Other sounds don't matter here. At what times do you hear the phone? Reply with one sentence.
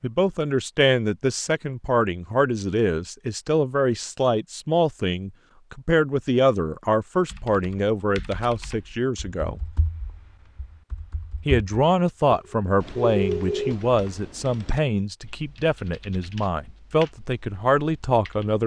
You can hear the phone from 12.2 to 13.8 s.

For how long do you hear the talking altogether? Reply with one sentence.
You can hear the talking for 17 seconds altogether.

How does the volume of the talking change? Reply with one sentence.
The volume of the talking stays about the same.